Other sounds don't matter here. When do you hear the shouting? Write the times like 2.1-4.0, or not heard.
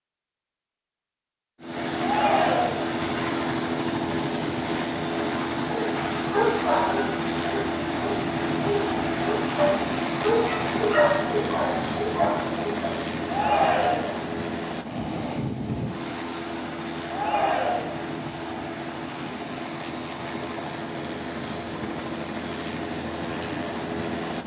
2.0-2.9, 13.2-14.2, 17.1-18.0.